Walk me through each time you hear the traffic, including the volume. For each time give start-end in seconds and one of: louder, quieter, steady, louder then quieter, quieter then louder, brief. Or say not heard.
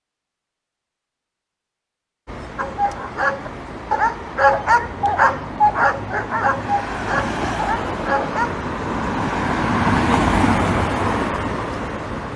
2.2-12.3 louder.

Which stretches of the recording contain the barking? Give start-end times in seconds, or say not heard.
2.5-8.5.